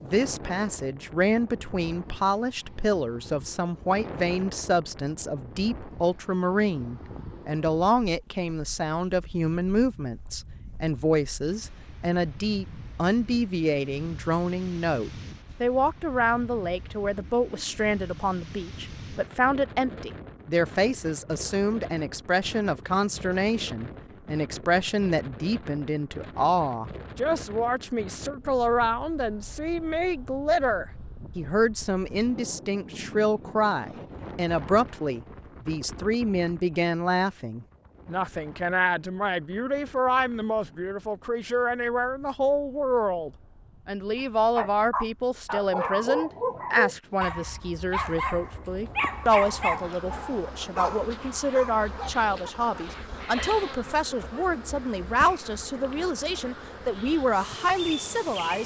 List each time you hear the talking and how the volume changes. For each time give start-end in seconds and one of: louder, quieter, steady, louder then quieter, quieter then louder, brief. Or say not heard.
0.0-58.6 steady.